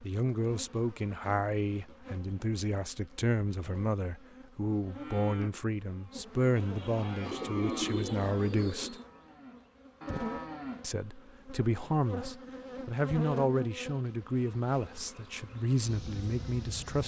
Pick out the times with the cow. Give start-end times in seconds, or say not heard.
4.9-10.9.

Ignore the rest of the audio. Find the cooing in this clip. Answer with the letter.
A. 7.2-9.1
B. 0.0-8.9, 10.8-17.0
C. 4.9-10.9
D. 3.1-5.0
A.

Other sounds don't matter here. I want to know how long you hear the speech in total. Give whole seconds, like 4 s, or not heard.
15 s.